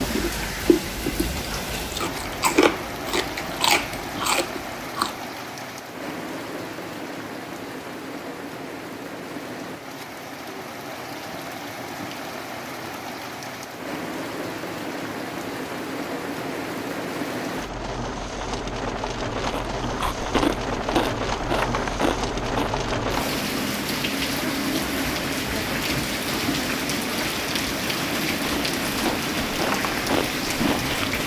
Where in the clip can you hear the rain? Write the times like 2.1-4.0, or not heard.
0.0-31.2.